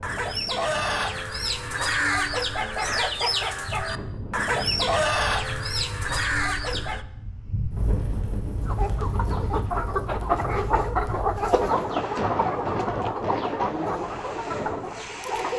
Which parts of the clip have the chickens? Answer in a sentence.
You can hear the chickens from 0.0 to 7.0 s and from 8.7 to 15.5 s.